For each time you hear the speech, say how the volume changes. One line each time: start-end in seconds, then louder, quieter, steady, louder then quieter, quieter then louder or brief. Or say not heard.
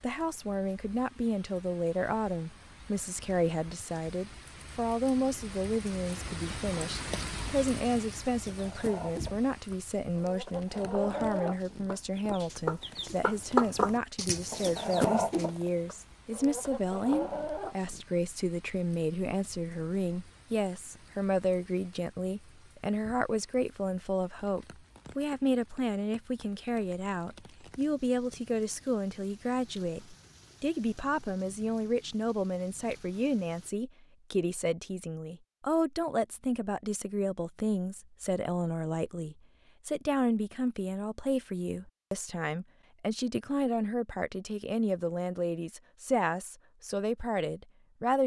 0.0-48.2 steady.